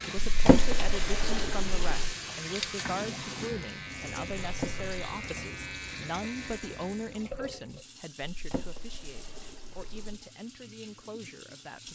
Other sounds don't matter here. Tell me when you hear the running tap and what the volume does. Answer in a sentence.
You can hear the running tap from 0.0 to 11.9 s, getting quieter.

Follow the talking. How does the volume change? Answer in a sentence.
The loudness of the talking goes down.